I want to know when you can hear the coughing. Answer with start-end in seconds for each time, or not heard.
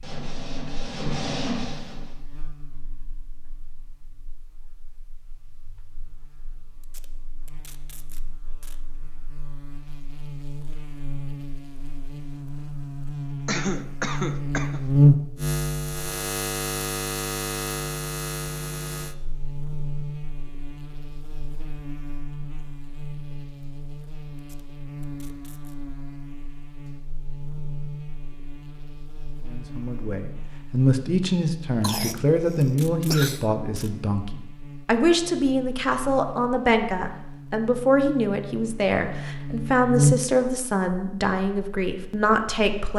13.4-14.8, 31.8-33.5.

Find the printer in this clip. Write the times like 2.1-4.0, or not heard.
0.0-2.1.